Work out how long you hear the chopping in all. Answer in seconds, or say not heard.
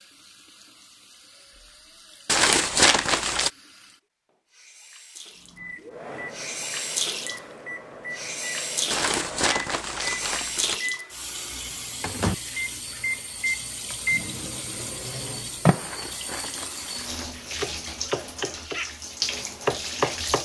3 s.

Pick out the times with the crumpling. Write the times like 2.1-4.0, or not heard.
2.2-3.5, 8.9-10.8, 15.8-17.8.